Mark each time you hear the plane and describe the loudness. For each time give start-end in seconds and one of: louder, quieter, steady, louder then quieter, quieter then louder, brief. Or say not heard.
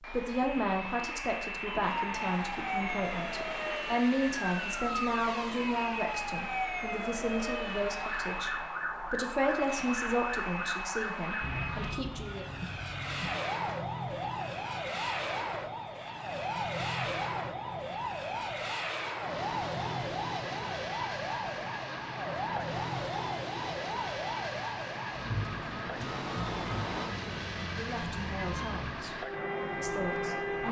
0.0-30.6 steady.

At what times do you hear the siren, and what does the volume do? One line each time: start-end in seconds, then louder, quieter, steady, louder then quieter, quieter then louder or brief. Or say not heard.
1.6-30.6 steady.